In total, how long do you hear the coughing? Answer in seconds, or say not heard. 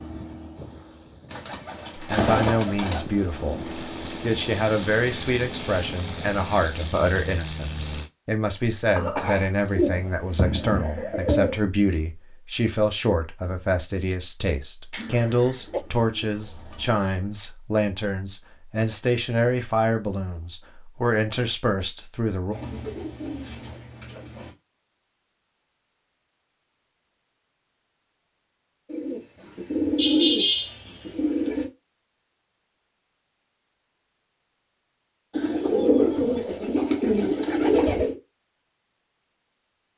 3 s.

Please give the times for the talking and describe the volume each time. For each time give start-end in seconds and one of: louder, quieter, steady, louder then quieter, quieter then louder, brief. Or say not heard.
1.9-22.6 steady.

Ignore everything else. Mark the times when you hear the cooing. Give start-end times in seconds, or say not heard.
1.3-3.0, 9.7-11.6, 14.9-16.9, 22.5-24.5, 28.9-31.7, 35.3-38.1.